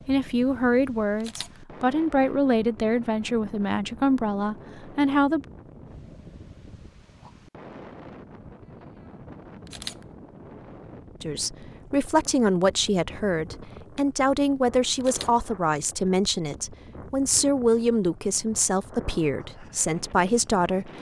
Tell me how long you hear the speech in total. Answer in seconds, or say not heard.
15 s.